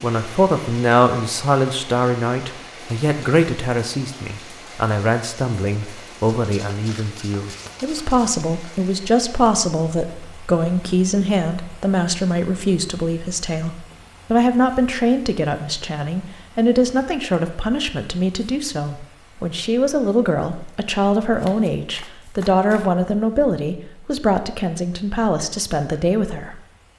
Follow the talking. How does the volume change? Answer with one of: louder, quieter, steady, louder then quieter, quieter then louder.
steady.